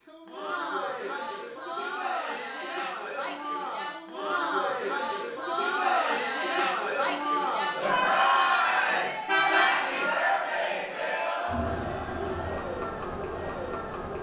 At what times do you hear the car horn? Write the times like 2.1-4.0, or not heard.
9.2-9.9.